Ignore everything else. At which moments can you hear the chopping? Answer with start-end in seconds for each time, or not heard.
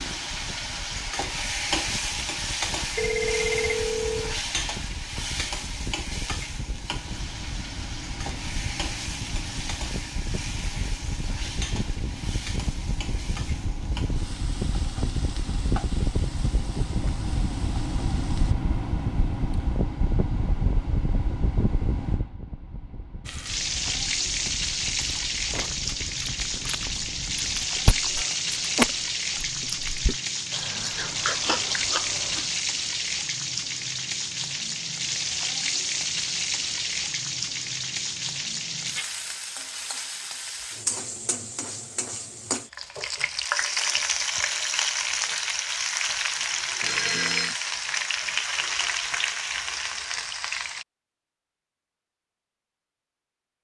not heard.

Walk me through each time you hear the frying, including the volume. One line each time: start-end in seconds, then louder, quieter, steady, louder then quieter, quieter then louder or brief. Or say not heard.
0.0-18.6 quieter
23.2-50.9 steady.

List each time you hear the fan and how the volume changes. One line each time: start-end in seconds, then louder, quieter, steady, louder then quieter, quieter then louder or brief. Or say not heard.
0.0-27.7 louder then quieter.